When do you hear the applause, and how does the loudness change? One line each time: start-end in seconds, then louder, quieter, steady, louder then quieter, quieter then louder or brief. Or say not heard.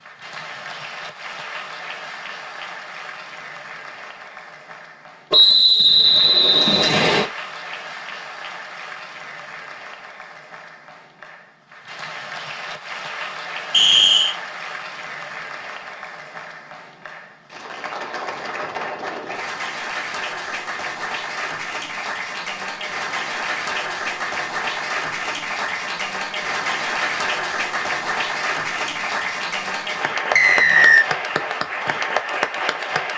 0.0-33.1 louder.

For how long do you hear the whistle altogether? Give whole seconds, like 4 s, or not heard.
3 s.